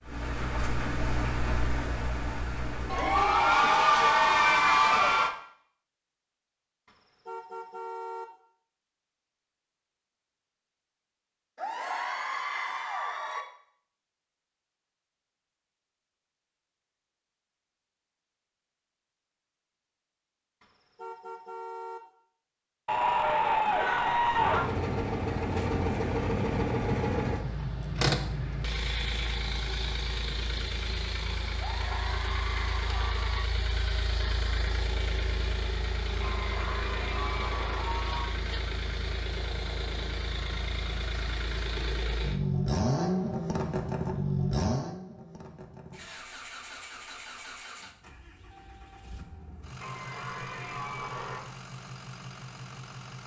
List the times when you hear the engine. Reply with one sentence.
You can hear the engine from 0.0 to 3.6 s and from 24.2 to 53.2 s.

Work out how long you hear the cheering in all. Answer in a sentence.
You can hear the cheering for 12 seconds altogether.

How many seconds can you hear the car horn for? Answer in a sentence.
The car horn can be heard for 4 seconds in total.